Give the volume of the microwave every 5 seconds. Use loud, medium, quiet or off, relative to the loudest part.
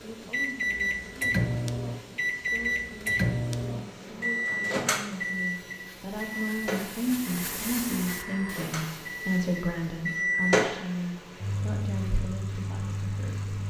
loud, medium, loud.